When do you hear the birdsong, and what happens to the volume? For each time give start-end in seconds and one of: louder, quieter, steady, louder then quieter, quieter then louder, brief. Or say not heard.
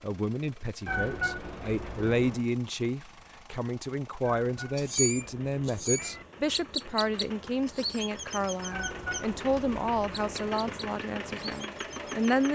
4.8-9.2 louder then quieter
10.1-12.3 brief.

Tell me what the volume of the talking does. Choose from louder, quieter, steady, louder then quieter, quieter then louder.
steady.